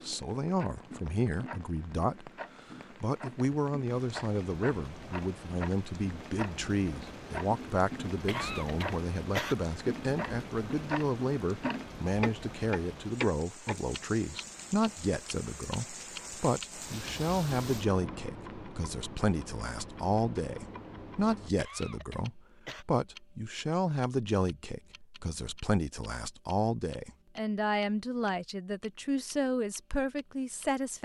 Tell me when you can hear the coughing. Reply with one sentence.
The coughing can be heard from 8.2 to 9.6 s and from 21.6 to 22.9 s.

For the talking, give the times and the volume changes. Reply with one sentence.
You can hear the talking briefly from 0.0 to 2.3 s; and from 3.0 to 31.0 s, at a steady volume.